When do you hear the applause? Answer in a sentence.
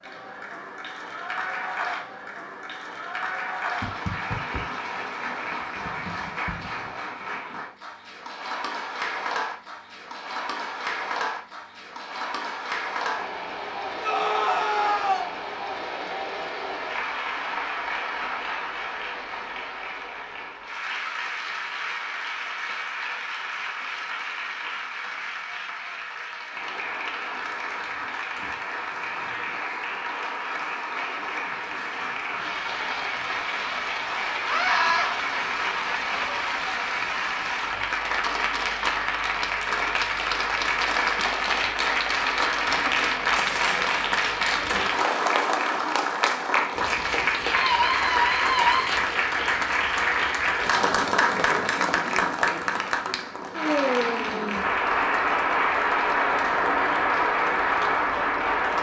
The applause can be heard from 0.0 to 58.7 s.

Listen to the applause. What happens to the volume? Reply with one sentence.
The loudness of the applause goes up.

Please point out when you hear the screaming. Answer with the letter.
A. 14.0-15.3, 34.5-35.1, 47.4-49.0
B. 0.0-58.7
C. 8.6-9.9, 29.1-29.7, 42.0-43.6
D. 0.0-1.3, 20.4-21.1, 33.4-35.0
A.